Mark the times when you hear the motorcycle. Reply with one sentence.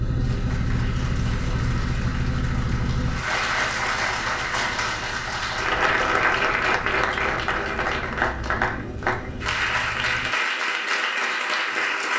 You can hear the motorcycle from 0.0 to 10.3 s.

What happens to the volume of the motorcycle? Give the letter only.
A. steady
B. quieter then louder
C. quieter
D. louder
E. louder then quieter
C.